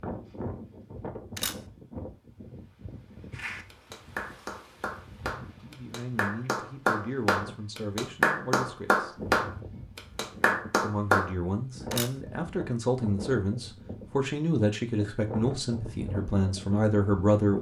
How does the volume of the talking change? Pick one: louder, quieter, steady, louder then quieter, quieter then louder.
louder.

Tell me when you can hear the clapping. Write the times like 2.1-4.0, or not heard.
3.3-11.3.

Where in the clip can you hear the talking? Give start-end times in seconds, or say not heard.
5.6-9.1, 10.8-17.5.